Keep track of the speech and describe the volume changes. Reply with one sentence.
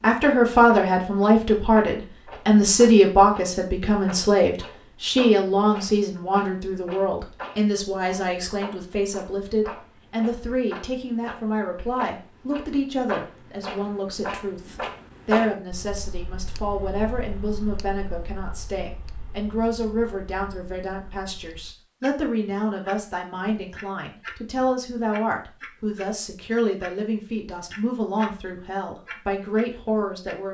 The volume of the speech goes down.